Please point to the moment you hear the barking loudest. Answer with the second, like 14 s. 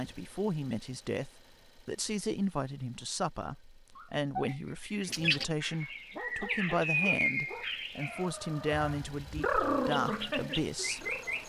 10 s.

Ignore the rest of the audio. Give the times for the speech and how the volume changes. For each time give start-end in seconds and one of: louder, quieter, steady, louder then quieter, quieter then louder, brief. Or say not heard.
0.0-11.2 steady.